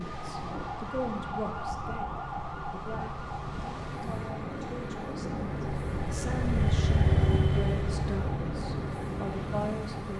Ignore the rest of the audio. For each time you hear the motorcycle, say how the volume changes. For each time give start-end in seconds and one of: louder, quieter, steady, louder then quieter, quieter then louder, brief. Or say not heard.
0.0-10.1 louder then quieter.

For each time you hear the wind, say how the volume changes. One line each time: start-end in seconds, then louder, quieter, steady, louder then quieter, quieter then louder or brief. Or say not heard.
0.0-10.1 louder.